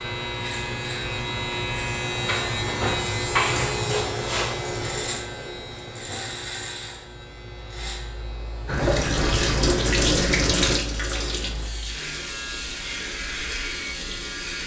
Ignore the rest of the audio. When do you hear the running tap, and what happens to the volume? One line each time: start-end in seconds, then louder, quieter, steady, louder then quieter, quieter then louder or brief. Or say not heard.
8.7-14.6 quieter.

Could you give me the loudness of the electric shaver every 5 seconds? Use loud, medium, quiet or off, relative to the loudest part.
loud, medium, medium.